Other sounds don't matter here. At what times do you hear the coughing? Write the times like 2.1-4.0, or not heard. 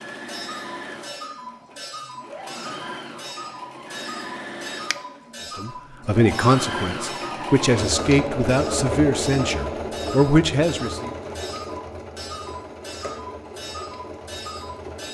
not heard.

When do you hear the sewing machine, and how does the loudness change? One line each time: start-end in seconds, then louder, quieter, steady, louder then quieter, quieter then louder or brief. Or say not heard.
0.0-15.0 louder then quieter.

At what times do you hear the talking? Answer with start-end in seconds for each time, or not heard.
5.5-11.1.